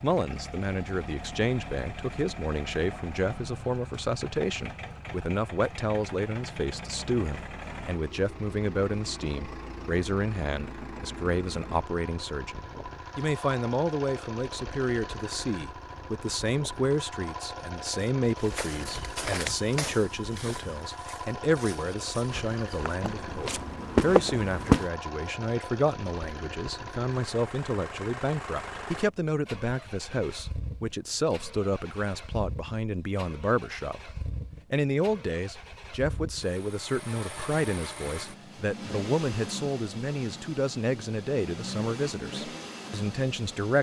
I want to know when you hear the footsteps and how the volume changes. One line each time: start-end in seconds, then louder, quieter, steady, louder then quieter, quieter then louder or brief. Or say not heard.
18.4-24.9 quieter then louder.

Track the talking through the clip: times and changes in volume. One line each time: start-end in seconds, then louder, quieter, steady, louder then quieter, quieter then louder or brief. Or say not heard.
0.0-34.1 steady
34.7-43.7 steady.